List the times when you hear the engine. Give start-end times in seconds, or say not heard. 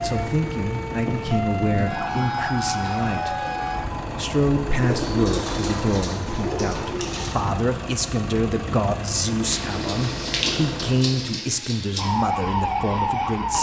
0.0-11.4.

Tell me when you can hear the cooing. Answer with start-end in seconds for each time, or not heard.
1.0-3.0, 4.8-7.3, 9.4-12.1.